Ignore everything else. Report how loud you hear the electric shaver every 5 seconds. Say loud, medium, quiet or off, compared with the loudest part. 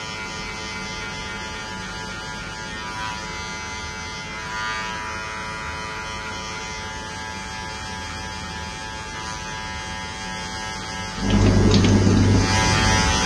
medium, medium, loud.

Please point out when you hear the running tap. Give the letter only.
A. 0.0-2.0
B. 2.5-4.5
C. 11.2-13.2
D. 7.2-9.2
C.